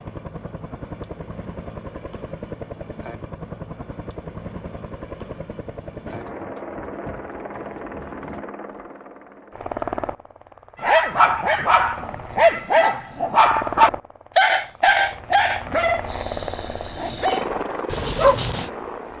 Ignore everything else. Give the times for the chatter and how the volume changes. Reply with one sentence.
You can't hear the chatter here.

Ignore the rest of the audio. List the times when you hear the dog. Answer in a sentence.
The dog can be heard from 10.8 to 18.7 s.